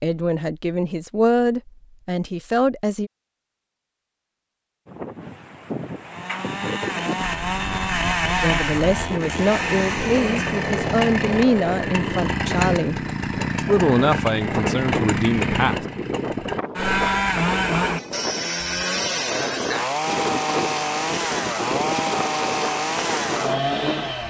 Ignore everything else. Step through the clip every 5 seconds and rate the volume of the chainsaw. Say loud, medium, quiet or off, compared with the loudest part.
off, loud, loud, loud, loud.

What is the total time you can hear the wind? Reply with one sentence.
The wind can be heard for 19 seconds in total.